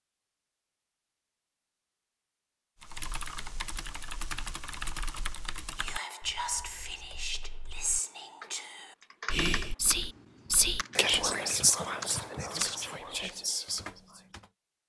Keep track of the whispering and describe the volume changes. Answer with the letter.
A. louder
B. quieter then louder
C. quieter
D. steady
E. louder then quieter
E.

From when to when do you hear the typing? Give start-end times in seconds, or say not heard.
2.8-14.5.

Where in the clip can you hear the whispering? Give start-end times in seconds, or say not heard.
5.8-14.2.